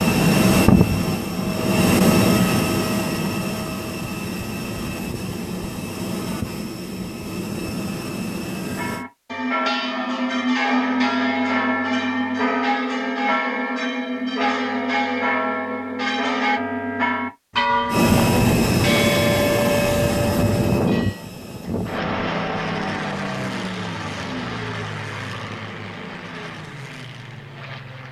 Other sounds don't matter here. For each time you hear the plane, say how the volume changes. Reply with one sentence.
You can hear the plane from 0.0 to 9.1 s, getting quieter; and from 17.9 to 28.0 s, getting quieter.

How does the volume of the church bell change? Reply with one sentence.
The volume of the church bell stays about the same.